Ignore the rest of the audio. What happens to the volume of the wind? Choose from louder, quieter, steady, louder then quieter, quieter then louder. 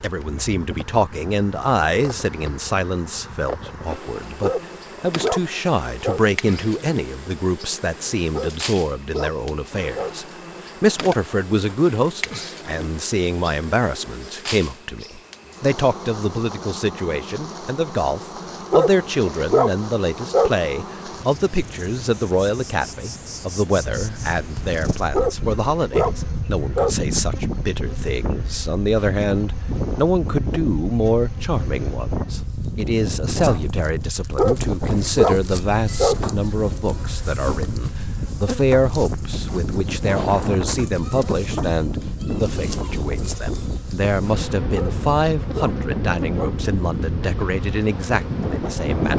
steady.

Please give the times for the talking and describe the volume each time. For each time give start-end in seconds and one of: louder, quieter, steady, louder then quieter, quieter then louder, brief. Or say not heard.
0.0-49.1 steady.